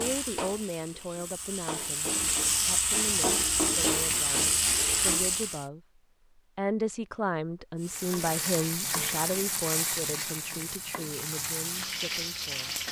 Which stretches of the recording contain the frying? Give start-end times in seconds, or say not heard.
0.0-5.7, 7.8-12.8.